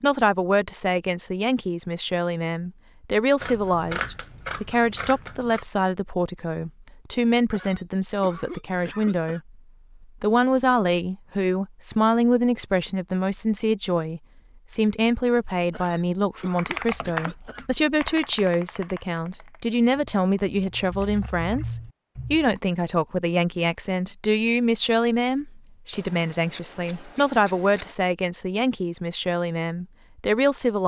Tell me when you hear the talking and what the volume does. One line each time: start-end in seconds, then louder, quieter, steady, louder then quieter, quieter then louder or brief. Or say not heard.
0.0-9.4 steady
10.0-30.8 steady.